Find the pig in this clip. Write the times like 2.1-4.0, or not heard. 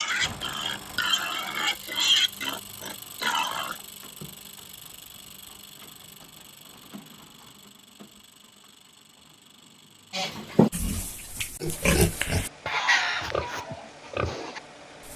0.0-3.8, 10.1-15.1.